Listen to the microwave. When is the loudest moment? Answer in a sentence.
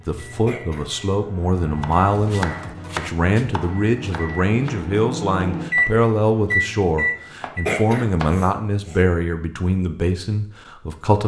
The volume of the microwave peaks at 6 seconds.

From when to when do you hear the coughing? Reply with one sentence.
You can hear the coughing from 0.5 to 0.9 s and from 7.7 to 9.0 s.